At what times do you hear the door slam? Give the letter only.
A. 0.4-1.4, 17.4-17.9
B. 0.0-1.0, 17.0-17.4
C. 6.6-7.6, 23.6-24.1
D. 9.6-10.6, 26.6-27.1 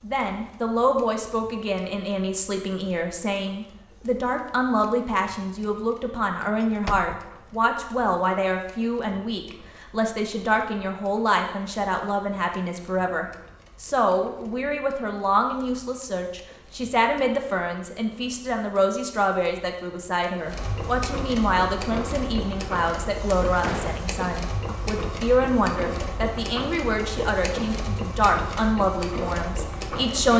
C.